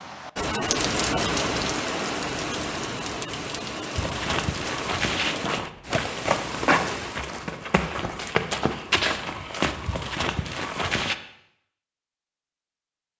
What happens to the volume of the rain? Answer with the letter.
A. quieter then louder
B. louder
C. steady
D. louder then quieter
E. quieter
E.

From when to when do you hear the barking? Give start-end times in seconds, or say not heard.
not heard.